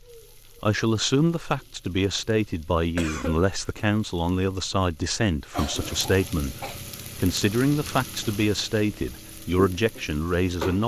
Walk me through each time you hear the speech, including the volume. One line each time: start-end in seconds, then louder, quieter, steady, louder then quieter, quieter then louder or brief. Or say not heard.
0.6-10.8 steady.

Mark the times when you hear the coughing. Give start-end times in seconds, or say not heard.
3.0-3.4, 5.5-6.8.